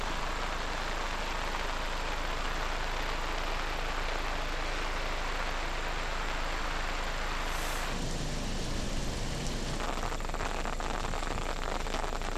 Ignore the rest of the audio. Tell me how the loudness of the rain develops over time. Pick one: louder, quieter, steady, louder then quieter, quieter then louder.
steady.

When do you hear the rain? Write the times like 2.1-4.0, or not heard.
0.0-12.3.